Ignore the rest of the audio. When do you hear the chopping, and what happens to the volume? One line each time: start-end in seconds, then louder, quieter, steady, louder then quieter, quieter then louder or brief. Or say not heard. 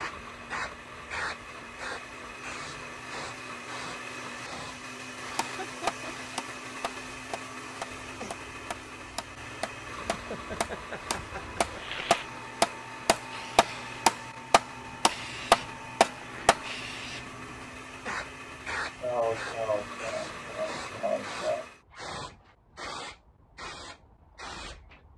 5.3-16.6 quieter then louder.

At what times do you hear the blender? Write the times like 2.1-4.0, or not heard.
0.0-21.9.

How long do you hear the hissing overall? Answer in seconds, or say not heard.
25 s.